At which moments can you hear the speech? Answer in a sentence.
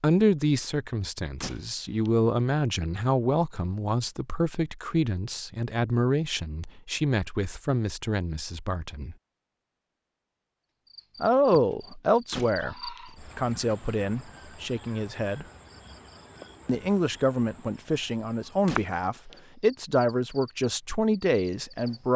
The speech can be heard from 0.0 to 9.2 s, from 11.2 to 15.4 s and from 16.6 to 22.1 s.